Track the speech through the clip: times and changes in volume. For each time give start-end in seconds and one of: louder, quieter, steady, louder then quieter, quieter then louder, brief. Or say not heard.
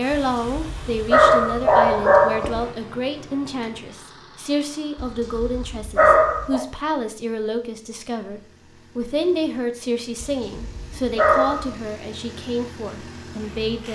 0.0-13.9 steady.